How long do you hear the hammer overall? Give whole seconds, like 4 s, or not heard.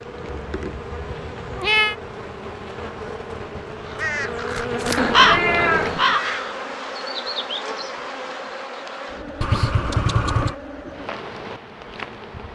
not heard.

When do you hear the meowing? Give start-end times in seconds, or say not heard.
0.3-1.9, 5.0-6.2, 9.4-10.6.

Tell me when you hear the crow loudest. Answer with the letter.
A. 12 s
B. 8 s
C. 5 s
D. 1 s
C.